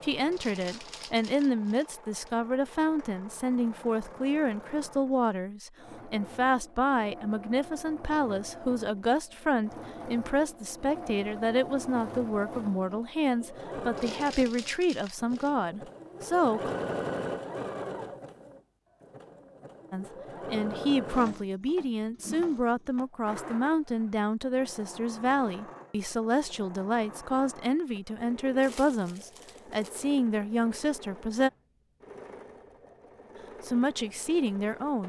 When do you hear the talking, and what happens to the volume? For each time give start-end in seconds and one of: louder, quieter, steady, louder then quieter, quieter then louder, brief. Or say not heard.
0.0-16.8 steady
19.9-31.5 steady
33.6-35.0 brief.